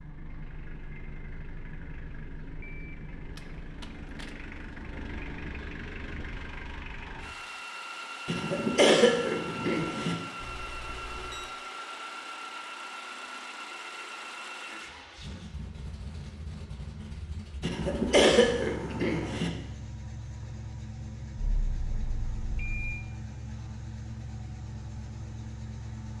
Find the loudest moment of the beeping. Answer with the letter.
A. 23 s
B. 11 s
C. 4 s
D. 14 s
A.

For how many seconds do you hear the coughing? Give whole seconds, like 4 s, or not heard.
4 s.